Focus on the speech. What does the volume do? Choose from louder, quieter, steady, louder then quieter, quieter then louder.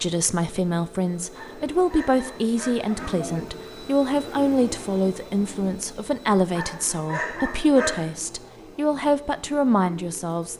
steady.